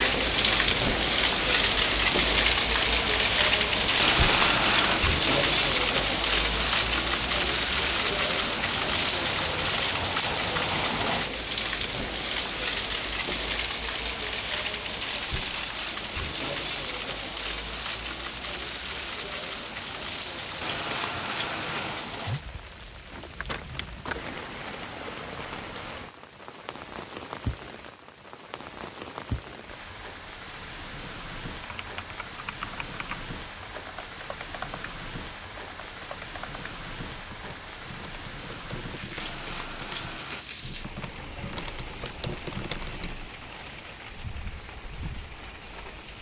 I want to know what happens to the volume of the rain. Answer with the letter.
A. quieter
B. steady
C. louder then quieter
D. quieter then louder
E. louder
A.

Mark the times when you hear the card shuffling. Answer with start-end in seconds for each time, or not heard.
4.0-5.0, 20.6-22.1, 39.1-40.5.